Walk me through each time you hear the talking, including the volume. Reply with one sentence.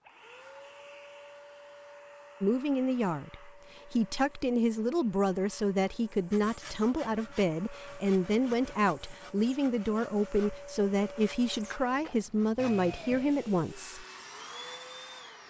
The talking can be heard from 2.4 to 14.1 s, at a steady volume.